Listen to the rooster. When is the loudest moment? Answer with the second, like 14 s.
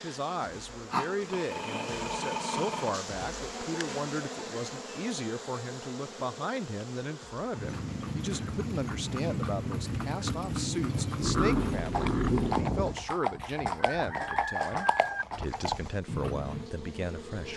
15 s.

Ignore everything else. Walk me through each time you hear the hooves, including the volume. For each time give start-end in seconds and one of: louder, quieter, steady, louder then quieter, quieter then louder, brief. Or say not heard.
7.5-16.7 steady.